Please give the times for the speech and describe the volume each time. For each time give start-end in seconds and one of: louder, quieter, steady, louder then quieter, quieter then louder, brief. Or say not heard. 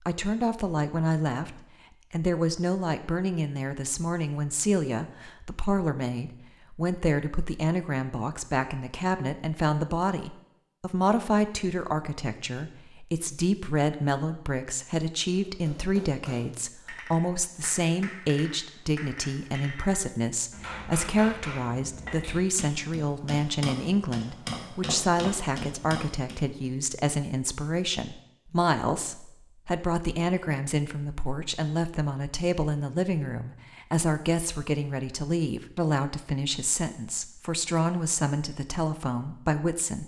0.1-40.0 steady.